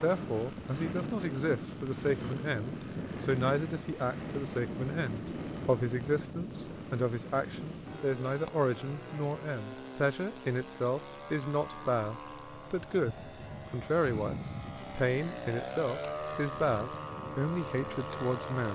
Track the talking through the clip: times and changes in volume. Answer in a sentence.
You can hear the talking from 0.0 to 18.7 s, at a steady volume.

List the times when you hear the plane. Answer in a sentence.
You can hear the plane from 0.0 to 18.7 s.